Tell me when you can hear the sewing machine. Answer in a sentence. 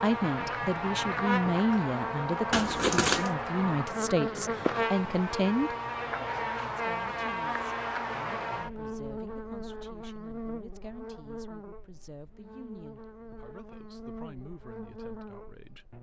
You can't hear the sewing machine here.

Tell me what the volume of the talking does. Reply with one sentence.
The volume of the talking goes down.